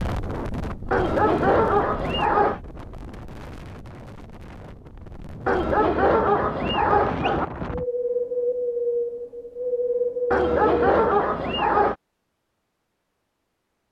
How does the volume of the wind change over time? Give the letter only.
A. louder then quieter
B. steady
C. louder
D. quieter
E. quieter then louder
E.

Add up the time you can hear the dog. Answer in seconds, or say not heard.
5 s.